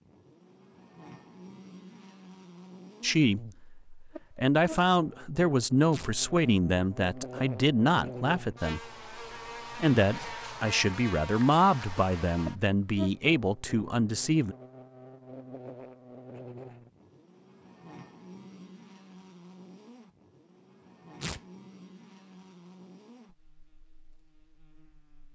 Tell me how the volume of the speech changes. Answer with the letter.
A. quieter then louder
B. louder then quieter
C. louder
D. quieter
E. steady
E.